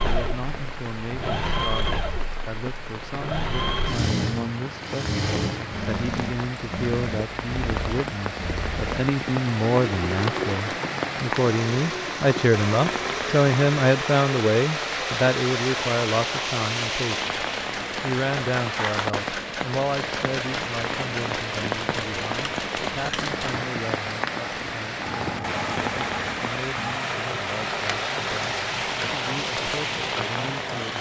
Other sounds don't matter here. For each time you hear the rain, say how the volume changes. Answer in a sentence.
You can hear the rain from 0.0 to 30.9 s, getting louder.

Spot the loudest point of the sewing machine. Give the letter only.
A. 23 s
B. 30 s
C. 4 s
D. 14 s
C.